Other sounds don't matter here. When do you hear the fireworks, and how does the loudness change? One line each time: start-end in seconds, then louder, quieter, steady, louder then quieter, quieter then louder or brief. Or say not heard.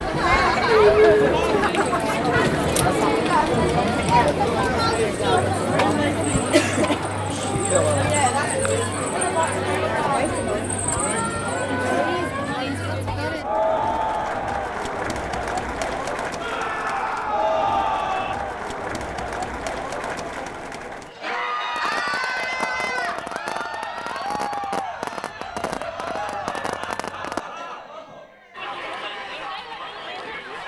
21.8-27.4 steady.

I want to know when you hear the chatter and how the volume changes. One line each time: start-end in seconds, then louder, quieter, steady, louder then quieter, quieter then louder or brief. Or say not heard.
0.0-30.6 quieter.